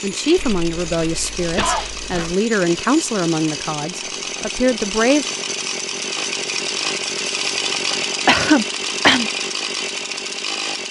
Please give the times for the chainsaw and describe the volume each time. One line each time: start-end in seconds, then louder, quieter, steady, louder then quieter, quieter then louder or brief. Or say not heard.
0.0-10.8 louder.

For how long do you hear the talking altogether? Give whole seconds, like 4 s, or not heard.
5 s.